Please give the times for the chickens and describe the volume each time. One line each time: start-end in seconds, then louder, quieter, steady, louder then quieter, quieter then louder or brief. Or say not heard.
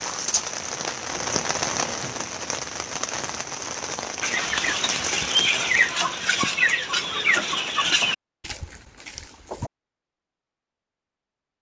4.2-9.7 quieter.